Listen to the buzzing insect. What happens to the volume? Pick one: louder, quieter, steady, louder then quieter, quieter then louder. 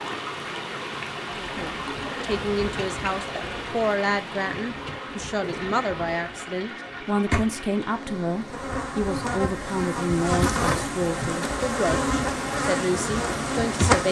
louder.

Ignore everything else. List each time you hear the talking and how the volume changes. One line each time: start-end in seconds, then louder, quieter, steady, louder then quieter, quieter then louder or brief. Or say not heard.
1.3-14.0 steady.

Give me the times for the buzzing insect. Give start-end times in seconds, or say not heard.
1.4-14.0.